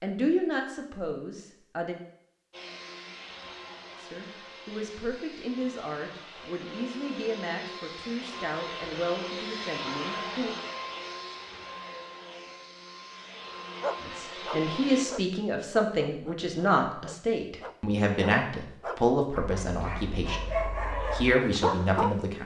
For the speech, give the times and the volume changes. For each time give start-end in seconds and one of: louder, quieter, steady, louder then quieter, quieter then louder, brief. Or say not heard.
0.0-2.0 brief
4.0-10.6 steady
14.0-22.4 steady.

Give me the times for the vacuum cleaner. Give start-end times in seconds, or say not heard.
2.5-15.1.